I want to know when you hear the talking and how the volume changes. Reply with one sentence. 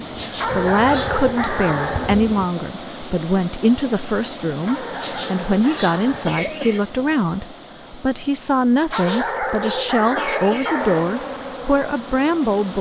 The talking can be heard from 0.0 to 12.7 s, at a steady volume.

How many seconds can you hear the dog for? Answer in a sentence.
You can hear the dog for 6 seconds altogether.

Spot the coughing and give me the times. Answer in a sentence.
You can hear the coughing from 0.1 to 1.2 s, from 5.0 to 6.8 s and from 8.9 to 10.8 s.